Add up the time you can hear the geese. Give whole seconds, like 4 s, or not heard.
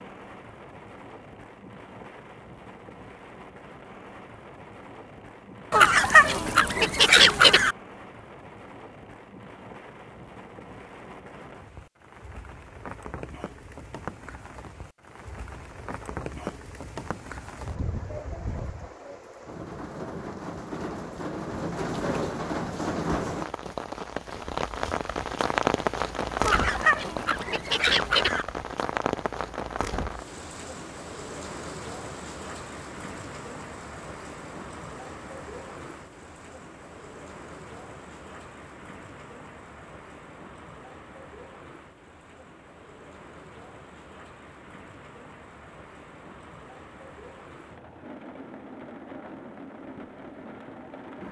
4 s.